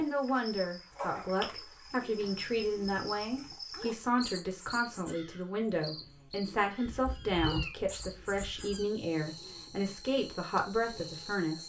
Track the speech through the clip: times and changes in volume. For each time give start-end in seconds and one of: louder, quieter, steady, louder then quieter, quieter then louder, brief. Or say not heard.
0.0-11.6 steady.